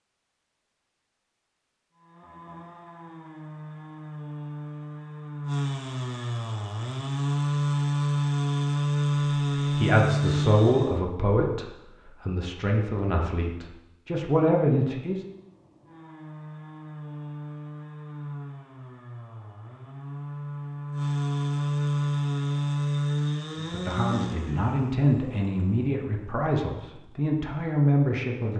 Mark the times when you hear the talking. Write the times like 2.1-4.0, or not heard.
9.8-15.2, 23.6-28.5.